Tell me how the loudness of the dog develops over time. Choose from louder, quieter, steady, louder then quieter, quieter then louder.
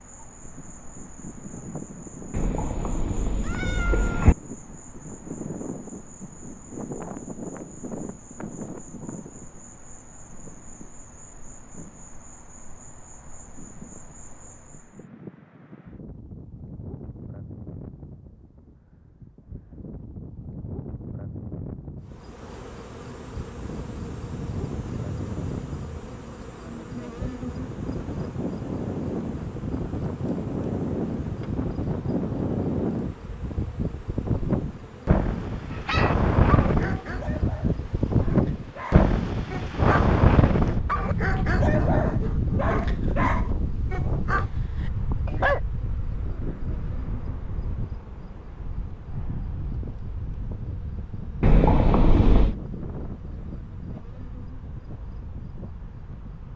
quieter then louder.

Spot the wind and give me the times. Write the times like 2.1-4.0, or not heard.
0.0-56.5.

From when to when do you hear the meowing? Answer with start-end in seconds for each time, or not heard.
2.3-4.3, 51.4-52.5.